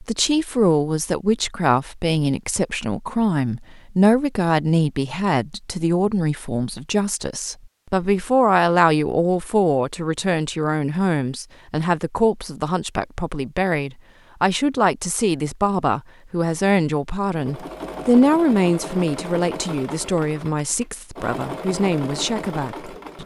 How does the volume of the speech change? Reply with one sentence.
The loudness of the speech stays about the same.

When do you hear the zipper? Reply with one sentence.
The zipper can't be heard in this clip.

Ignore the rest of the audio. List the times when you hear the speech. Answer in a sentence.
You can hear the speech from 0.0 to 23.2 s.